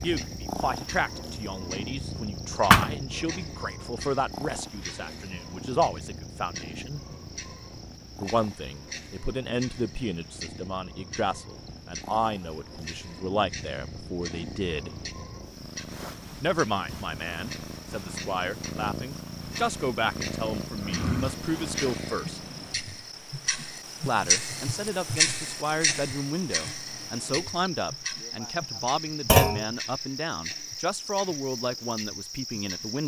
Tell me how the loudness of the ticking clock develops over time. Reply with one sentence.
The volume of the ticking clock goes up, then down.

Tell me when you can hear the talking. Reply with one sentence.
You can hear the talking from 0.0 to 7.0 s, from 8.2 to 14.9 s, from 16.4 to 22.4 s and from 24.1 to 33.0 s.